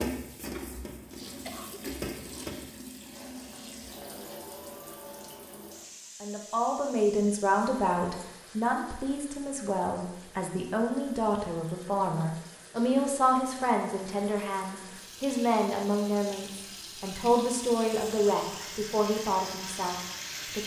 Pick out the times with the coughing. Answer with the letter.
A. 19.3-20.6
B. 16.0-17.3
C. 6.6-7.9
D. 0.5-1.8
D.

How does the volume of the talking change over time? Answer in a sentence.
The volume of the talking stays about the same.